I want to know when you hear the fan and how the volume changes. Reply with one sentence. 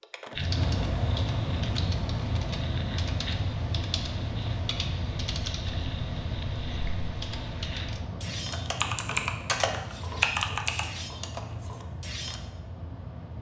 You can hear the fan from 0.0 to 13.3 s, getting quieter.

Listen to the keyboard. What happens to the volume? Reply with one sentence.
The volume of the keyboard goes up.